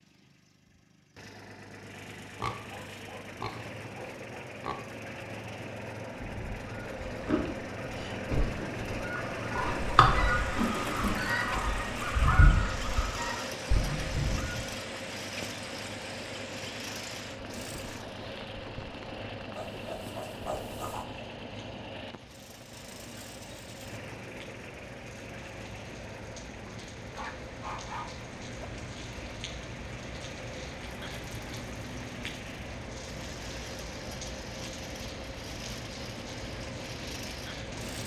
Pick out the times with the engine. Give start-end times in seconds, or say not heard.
0.0-38.0.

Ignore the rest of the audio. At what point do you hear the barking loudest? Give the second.
28 s.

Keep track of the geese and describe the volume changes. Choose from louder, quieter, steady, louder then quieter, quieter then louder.
louder then quieter.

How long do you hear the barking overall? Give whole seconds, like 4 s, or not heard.
3 s.